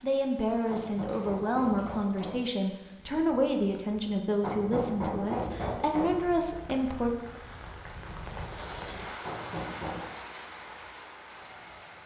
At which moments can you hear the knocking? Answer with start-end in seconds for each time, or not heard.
0.7-2.5, 4.4-6.2, 9.2-10.1.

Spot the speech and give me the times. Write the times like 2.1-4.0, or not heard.
0.0-7.2.